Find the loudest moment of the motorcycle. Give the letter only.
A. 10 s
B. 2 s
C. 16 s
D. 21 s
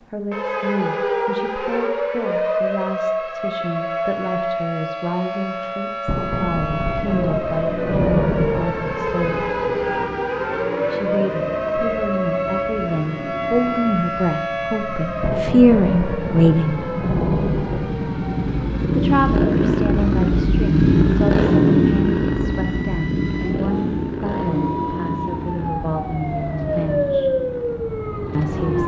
D.